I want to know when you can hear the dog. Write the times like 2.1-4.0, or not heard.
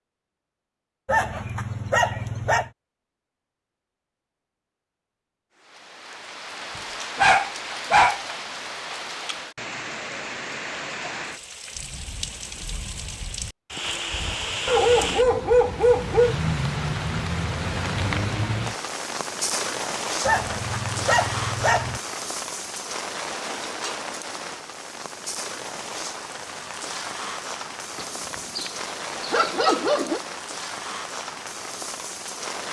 1.1-2.7, 7.2-8.2, 14.7-16.4, 20.2-22.0, 27.9-30.2.